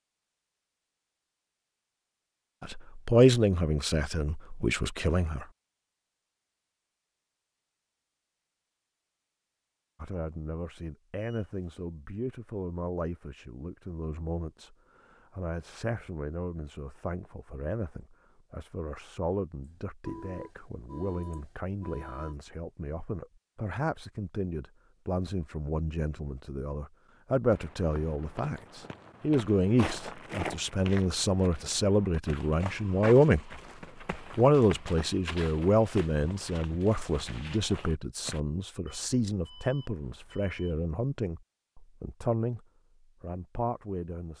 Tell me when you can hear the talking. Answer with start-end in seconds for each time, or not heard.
2.6-5.5, 10.0-33.4, 34.1-44.3.